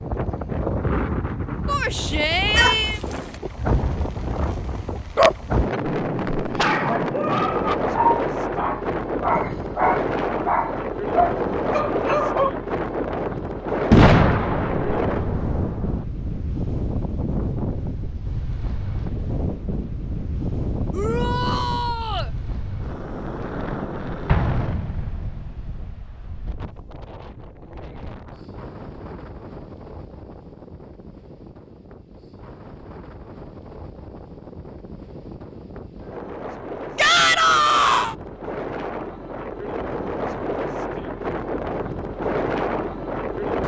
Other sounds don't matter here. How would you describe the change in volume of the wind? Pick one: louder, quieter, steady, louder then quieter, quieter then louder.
quieter then louder.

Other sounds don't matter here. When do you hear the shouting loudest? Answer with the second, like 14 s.
37 s.